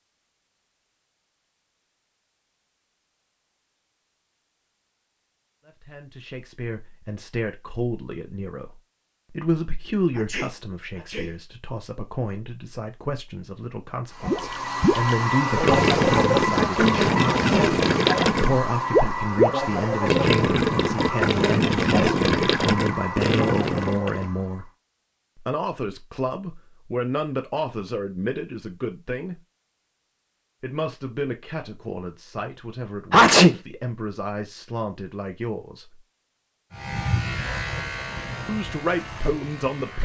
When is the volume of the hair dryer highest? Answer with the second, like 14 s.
16 s.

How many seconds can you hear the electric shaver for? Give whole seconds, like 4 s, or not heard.
3 s.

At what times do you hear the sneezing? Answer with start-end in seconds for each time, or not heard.
10.2-11.3, 16.6-17.1, 33.1-33.5.